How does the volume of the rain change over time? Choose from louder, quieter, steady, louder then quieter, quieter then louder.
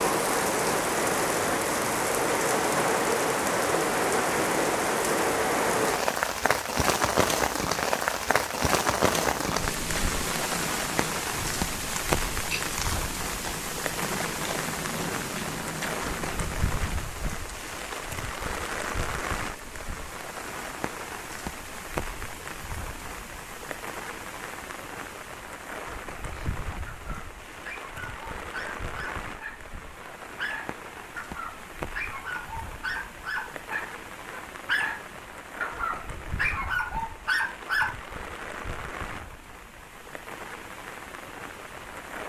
quieter.